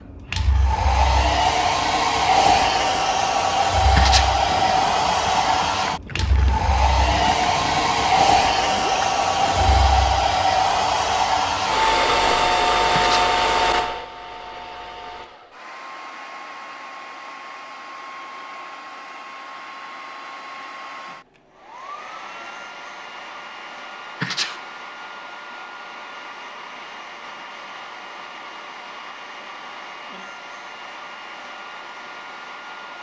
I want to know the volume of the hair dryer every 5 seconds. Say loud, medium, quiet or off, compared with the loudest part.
loud, loud, loud, quiet, quiet, quiet, quiet.